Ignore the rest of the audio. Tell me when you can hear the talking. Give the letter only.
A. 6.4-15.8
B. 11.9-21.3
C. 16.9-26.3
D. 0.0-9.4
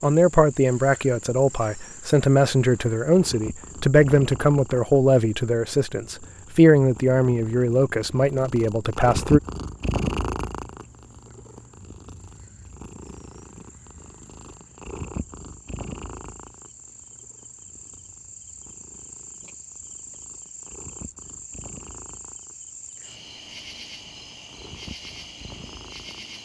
D.